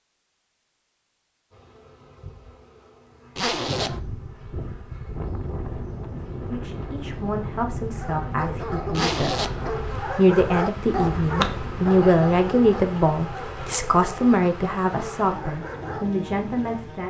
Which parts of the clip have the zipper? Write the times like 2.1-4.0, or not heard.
3.4-4.0, 8.9-9.6.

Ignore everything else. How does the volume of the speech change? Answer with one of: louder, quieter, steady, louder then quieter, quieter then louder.
louder then quieter.